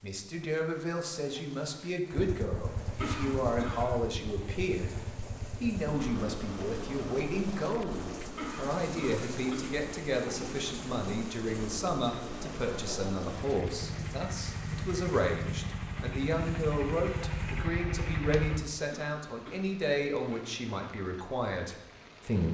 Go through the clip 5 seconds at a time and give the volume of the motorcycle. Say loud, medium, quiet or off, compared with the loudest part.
medium, medium, medium, loud, off.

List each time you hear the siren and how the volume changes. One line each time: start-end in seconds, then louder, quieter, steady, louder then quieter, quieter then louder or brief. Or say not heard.
not heard.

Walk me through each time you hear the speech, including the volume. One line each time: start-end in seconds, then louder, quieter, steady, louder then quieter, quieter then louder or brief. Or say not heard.
0.0-22.4 steady.